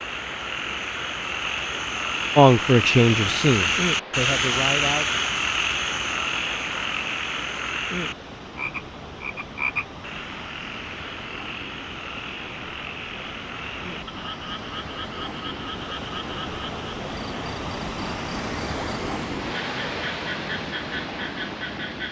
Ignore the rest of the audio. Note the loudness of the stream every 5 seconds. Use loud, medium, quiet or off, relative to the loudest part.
medium, medium, medium, loud, loud.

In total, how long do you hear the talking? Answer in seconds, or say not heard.
3 s.